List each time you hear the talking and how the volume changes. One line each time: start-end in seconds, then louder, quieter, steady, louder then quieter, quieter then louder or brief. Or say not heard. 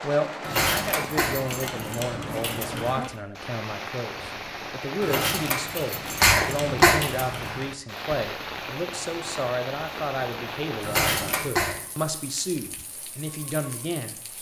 0.0-14.3 steady.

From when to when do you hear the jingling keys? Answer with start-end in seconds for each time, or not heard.
0.4-3.1, 5.0-7.7, 10.8-11.6.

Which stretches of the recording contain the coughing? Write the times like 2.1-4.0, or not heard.
0.6-1.4, 6.2-7.0, 10.9-11.8.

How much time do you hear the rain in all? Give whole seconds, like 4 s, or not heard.
14 s.